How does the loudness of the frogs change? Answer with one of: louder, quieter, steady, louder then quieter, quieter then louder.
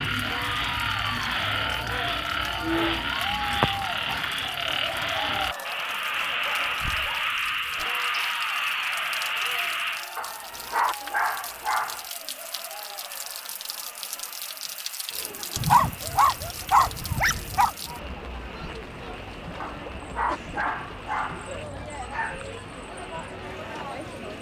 quieter.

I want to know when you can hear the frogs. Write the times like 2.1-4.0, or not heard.
0.0-24.3.